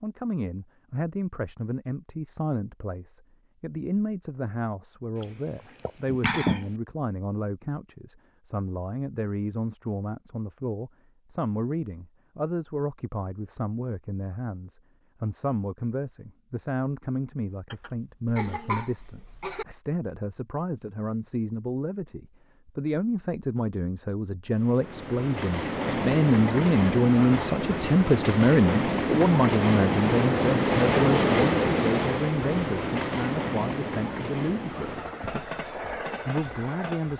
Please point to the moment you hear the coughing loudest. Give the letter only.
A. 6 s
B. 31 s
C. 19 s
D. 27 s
A.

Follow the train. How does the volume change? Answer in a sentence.
The loudness of the train goes up, then down.